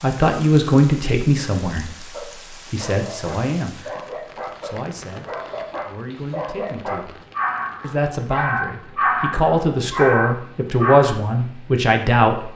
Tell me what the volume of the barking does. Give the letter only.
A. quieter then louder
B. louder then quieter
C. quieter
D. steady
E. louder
E.